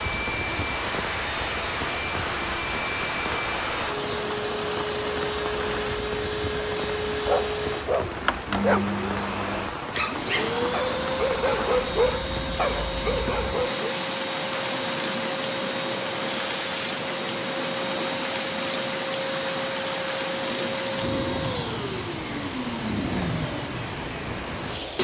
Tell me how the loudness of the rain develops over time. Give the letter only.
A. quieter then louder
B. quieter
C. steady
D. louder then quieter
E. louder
C.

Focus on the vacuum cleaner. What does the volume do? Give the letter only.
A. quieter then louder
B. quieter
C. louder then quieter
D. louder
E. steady
E.